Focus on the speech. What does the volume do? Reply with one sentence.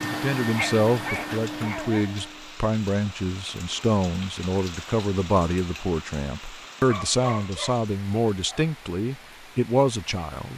The loudness of the speech stays about the same.